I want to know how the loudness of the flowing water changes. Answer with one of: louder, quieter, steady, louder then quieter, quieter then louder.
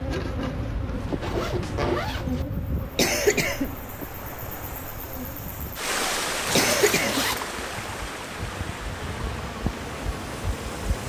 louder then quieter.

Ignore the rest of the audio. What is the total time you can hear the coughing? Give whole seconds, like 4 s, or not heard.
2 s.